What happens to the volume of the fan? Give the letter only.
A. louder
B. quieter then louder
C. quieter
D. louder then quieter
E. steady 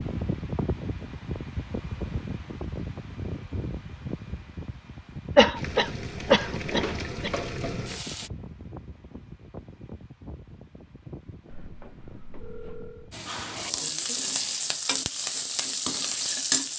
C.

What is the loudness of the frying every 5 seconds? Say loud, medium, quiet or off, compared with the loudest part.
off, medium, loud, loud.